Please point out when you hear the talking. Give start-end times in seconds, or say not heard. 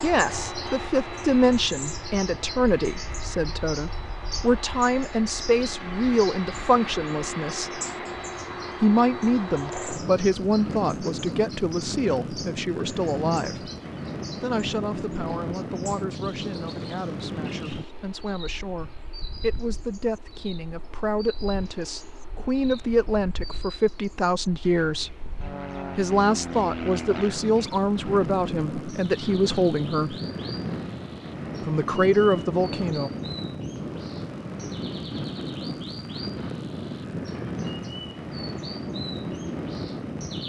0.0-7.8, 8.8-13.7, 14.4-25.1, 25.9-30.1, 31.6-33.1.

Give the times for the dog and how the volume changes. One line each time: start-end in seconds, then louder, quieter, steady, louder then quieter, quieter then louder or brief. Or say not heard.
not heard.